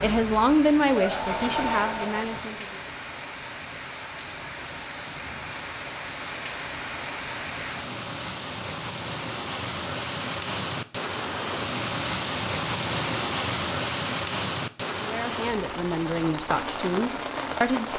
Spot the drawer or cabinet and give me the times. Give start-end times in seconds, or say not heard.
not heard.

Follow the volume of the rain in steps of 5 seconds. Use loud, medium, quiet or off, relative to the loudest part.
medium, medium, loud, loud.